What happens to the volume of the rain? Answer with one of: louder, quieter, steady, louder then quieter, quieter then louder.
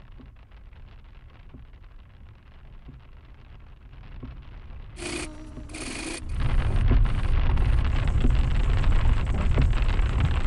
louder.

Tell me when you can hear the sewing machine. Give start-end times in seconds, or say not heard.
5.0-10.4.